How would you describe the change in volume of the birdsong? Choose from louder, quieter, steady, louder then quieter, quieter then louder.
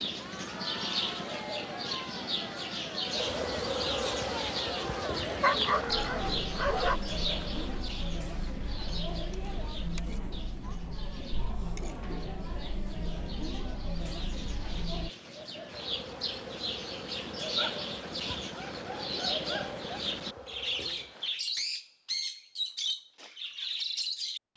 quieter then louder.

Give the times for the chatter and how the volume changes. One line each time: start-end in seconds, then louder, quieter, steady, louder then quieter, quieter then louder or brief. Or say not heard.
0.1-15.1 steady.